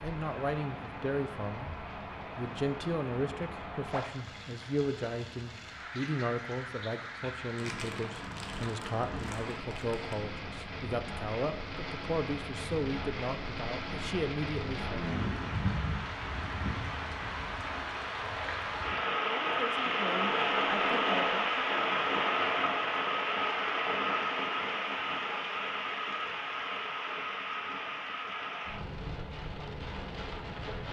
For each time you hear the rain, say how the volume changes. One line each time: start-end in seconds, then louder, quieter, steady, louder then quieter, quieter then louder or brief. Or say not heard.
0.0-30.8 louder then quieter.